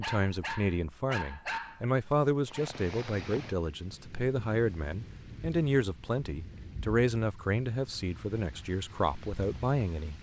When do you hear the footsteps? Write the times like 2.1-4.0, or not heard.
not heard.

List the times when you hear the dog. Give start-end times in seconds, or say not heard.
0.0-2.7.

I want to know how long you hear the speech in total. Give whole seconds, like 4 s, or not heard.
10 s.